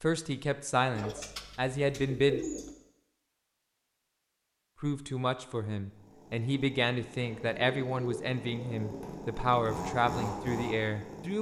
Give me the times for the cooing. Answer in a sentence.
The cooing can be heard from 0.9 to 2.7 s and from 7.2 to 9.2 s.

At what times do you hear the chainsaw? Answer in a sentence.
The chainsaw can be heard from 5.8 to 11.3 s.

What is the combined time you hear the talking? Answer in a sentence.
You can hear the talking for 9 seconds altogether.